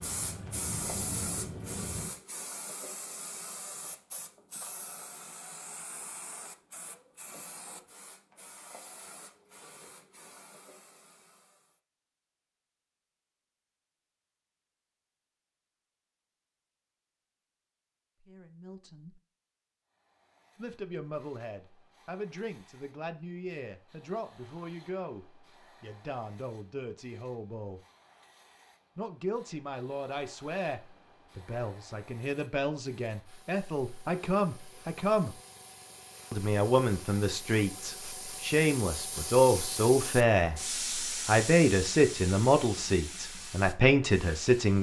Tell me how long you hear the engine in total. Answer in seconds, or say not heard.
2 s.